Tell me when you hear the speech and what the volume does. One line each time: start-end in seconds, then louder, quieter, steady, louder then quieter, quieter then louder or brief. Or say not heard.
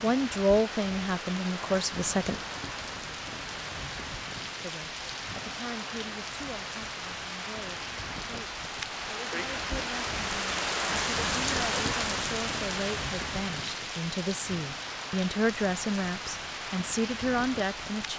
0.0-2.4 brief
4.6-18.1 louder.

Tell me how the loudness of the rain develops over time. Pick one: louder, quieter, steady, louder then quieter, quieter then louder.
louder then quieter.